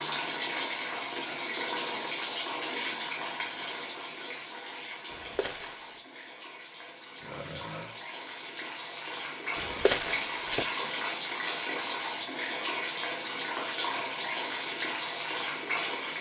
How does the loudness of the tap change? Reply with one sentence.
The volume of the tap goes down, then up.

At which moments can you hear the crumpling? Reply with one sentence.
You can hear the crumpling from 5.1 to 6.0 s and from 9.6 to 10.8 s.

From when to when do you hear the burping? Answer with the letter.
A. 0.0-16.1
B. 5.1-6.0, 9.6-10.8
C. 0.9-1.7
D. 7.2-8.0
D.